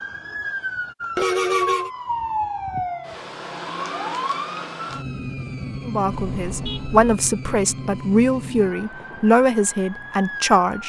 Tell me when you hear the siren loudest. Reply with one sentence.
The volume of the siren peaks at 2 seconds.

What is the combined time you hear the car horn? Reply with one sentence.
You can hear the car horn for 2 seconds altogether.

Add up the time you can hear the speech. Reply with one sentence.
The speech can be heard for 5 seconds in total.